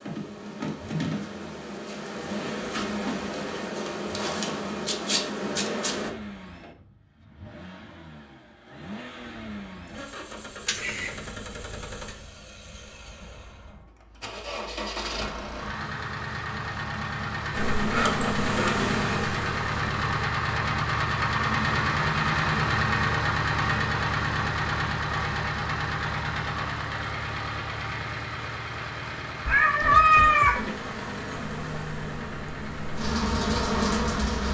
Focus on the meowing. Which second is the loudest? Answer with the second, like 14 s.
30 s.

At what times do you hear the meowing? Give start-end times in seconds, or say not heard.
10.7-11.2, 29.4-30.7.